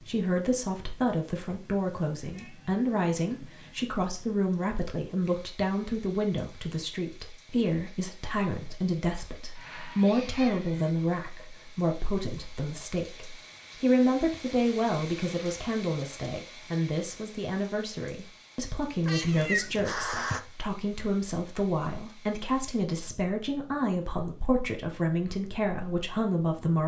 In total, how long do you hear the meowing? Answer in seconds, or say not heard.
4 s.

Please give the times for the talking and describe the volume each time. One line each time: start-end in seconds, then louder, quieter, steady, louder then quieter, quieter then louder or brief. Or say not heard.
0.0-26.8 steady.